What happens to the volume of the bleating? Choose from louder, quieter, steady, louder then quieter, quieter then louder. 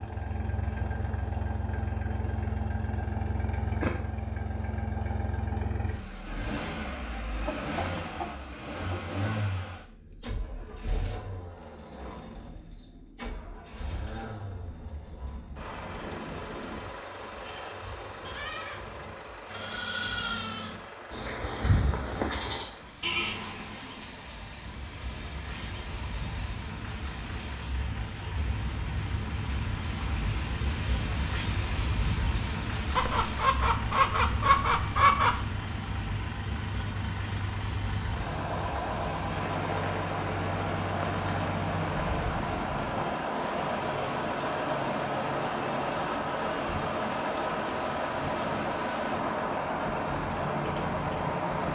louder.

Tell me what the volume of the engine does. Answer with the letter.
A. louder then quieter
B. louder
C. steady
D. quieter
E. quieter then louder
E.